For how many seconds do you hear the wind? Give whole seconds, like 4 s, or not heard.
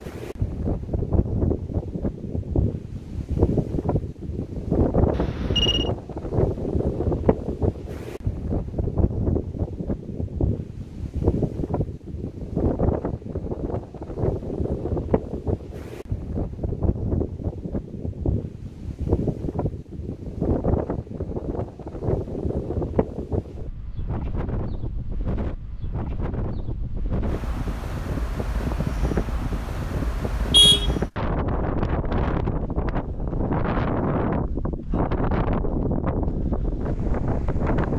38 s.